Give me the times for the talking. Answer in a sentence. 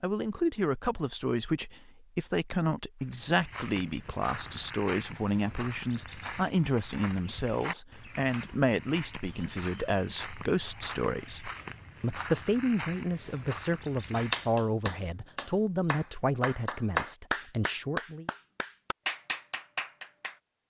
The talking can be heard from 0.0 to 18.2 s.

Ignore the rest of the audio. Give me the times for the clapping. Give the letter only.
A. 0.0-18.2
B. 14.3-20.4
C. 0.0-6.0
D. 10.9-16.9
B.